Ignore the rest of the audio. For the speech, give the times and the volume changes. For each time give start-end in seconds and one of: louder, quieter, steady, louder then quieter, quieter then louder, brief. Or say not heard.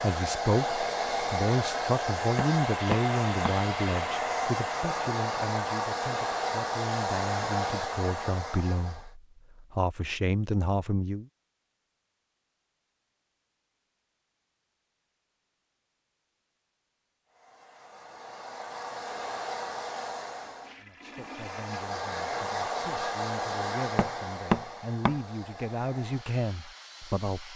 0.0-11.2 quieter then louder
20.8-27.5 louder.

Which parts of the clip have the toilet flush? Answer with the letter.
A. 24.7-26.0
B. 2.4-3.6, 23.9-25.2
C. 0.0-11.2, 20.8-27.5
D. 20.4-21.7
D.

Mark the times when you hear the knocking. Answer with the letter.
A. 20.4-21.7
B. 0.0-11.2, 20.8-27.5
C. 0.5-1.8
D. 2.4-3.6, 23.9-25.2
D.